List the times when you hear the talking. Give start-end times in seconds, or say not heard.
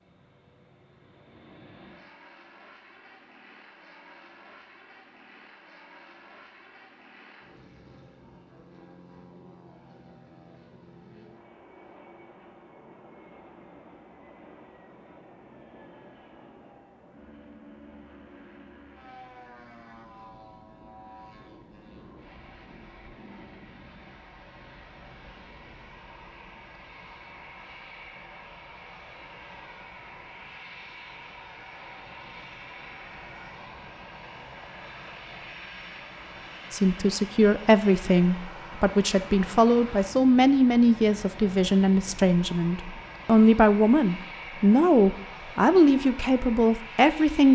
36.7-47.5.